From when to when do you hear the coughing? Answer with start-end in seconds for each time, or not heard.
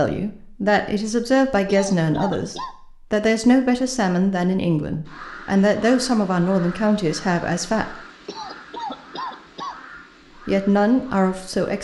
1.6-2.8, 8.2-9.8.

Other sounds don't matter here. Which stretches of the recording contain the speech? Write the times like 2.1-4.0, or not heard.
0.0-8.0, 10.4-11.8.